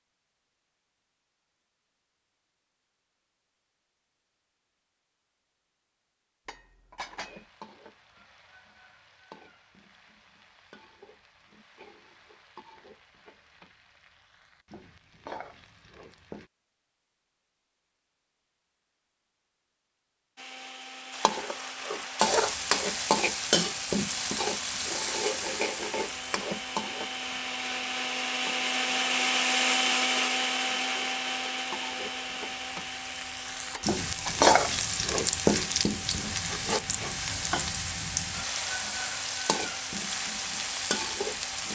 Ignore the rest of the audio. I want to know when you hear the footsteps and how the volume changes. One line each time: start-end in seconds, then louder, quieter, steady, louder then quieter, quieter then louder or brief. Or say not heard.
not heard.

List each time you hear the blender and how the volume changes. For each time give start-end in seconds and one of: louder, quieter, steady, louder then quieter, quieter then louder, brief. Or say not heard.
20.4-41.7 louder then quieter.